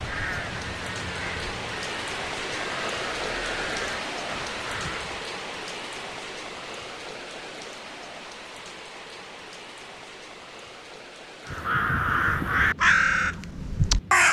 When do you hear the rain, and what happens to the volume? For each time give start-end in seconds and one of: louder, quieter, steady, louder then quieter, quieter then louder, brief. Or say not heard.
0.0-14.2 quieter.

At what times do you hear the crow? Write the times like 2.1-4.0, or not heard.
0.0-5.2, 11.4-14.2.